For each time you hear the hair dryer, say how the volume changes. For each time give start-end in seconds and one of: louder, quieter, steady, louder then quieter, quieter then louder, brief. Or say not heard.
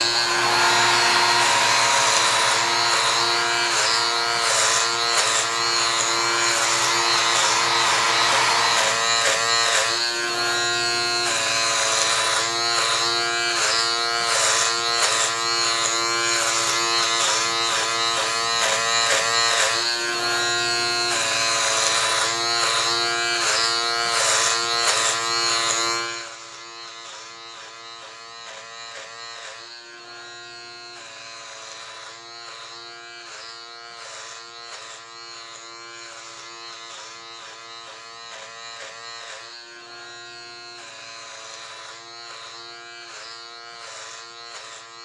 0.0-9.1 quieter then louder.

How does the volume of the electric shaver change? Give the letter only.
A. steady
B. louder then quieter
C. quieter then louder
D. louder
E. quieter
E.